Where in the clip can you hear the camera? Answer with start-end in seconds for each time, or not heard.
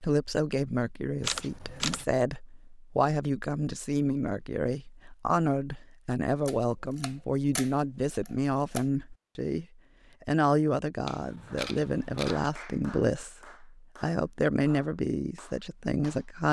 1.2-2.0, 6.5-8.8, 11.1-12.5.